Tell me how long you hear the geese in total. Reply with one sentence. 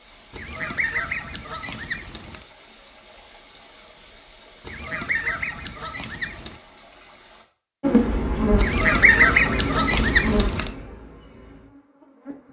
You can hear the geese for 6 seconds altogether.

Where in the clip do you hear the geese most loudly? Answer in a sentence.
The volume of the geese peaks at 9 seconds.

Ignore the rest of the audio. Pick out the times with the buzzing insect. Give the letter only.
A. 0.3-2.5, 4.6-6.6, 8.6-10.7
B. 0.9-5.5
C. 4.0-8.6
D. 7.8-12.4
D.